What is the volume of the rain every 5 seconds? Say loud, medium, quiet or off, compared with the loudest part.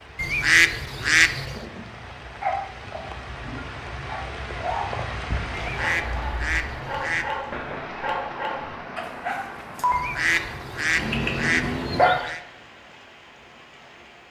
loud, loud, medium.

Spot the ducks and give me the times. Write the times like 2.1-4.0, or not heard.
0.1-1.6, 5.5-7.3, 9.9-12.4.